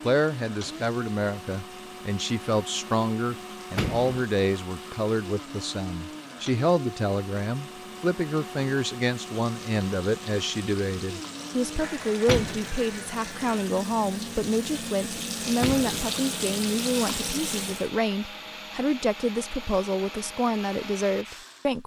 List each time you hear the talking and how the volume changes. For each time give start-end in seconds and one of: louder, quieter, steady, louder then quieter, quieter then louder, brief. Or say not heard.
0.0-21.8 steady.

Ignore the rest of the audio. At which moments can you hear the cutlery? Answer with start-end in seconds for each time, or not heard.
not heard.